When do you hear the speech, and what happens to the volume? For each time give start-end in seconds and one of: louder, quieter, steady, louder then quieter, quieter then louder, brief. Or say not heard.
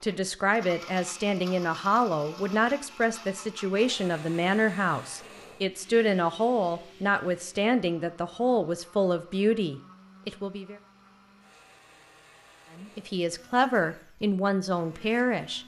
0.0-10.8 steady
12.8-15.6 brief.